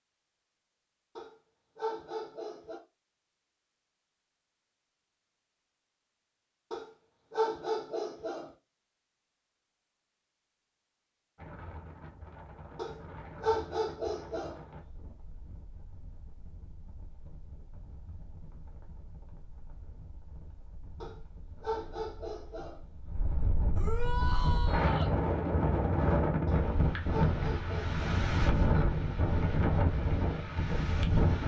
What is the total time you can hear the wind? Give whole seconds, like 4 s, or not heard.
20 s.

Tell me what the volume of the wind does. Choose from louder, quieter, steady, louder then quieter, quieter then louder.
quieter then louder.